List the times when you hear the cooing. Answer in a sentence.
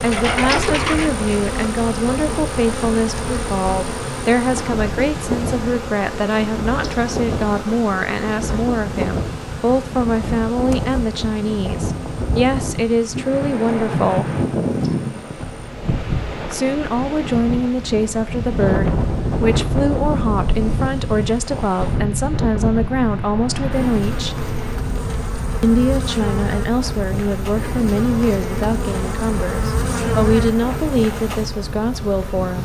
You can hear the cooing from 0.1 to 1.2 s.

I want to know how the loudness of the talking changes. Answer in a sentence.
The loudness of the talking stays about the same.